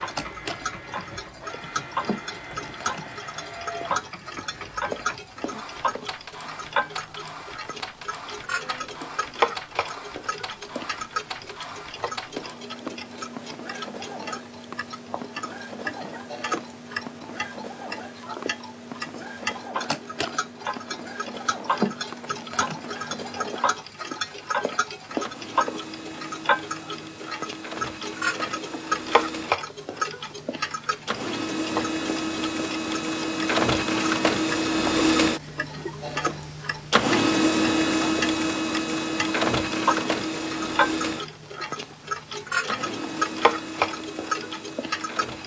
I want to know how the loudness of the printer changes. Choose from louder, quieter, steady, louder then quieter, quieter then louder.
louder.